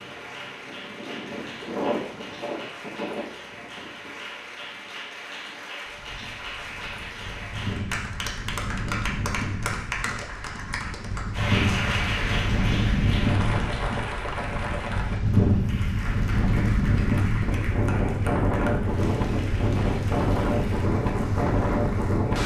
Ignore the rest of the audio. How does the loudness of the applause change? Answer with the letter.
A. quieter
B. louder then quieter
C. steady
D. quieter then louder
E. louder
B.